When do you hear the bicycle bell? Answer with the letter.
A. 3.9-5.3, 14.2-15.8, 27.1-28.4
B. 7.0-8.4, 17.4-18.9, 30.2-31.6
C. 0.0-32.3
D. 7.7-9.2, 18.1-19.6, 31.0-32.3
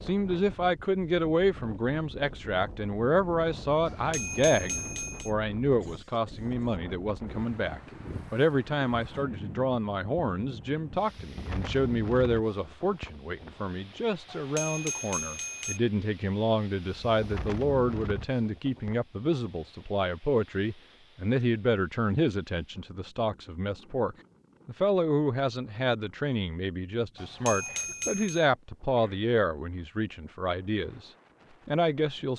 A.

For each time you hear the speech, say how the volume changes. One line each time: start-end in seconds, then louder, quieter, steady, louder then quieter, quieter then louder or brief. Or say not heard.
0.0-32.3 steady.